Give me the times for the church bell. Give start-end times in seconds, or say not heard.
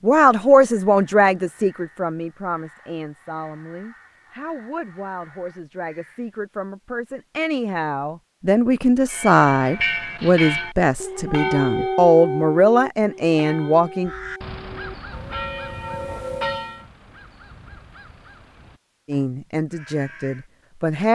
9.1-16.9.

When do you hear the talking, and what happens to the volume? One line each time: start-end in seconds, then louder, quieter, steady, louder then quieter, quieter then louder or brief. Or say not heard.
0.0-14.1 quieter then louder
19.1-21.0 brief.